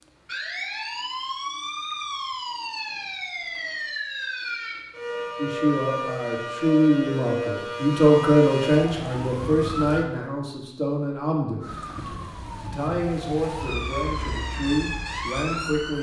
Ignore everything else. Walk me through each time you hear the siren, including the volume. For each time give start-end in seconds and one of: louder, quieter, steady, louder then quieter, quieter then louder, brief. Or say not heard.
0.0-10.1 steady
11.6-15.9 louder.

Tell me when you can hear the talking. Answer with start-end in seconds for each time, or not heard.
5.3-15.9.